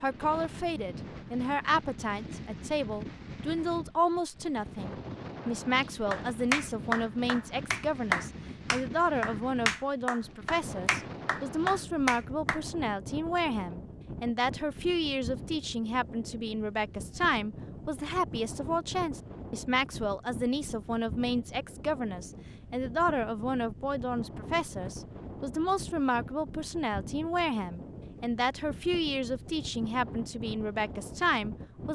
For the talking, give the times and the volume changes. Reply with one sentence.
You can hear the talking from 0.0 to 31.9 s, at a steady volume.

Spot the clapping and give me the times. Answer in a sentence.
You can hear the clapping from 6.1 to 12.6 s.